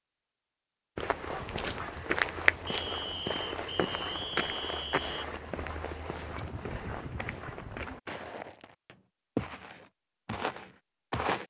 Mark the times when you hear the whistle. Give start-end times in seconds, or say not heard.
2.6-5.2.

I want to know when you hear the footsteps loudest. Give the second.
2 s.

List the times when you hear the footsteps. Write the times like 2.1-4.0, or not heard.
0.9-11.4.